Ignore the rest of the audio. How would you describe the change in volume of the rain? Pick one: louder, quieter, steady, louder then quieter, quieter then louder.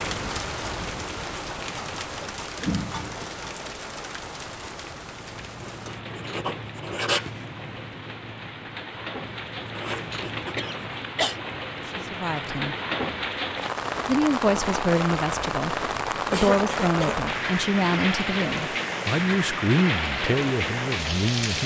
quieter then louder.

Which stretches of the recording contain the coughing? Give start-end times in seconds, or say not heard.
2.6-3.2, 10.6-11.4, 16.3-17.2.